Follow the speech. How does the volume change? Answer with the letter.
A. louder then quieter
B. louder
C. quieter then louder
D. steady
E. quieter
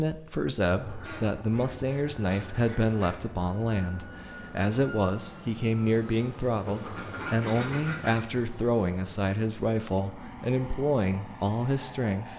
D.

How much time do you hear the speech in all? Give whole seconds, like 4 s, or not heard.
12 s.